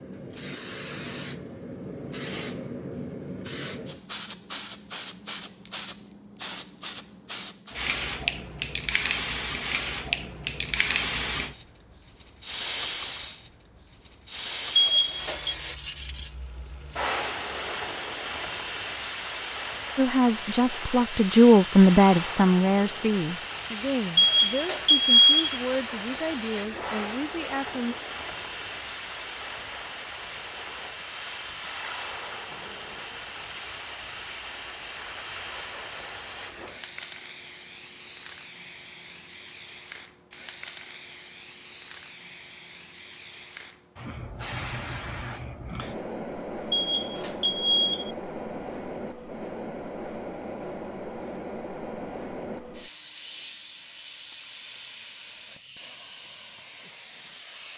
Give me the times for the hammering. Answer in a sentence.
You can't hear the hammering here.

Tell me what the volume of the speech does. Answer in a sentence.
The loudness of the speech goes down.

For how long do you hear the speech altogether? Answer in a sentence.
The speech can be heard for 8 seconds in total.